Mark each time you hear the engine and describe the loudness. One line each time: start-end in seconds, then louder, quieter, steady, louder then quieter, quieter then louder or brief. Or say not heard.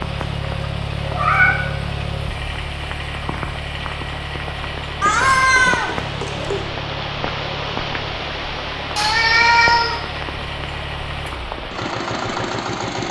0.0-13.0 quieter then louder.